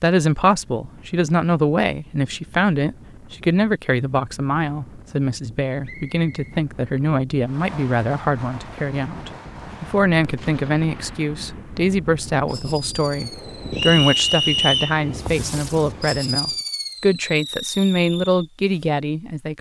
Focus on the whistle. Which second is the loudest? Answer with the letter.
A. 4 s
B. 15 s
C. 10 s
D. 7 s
B.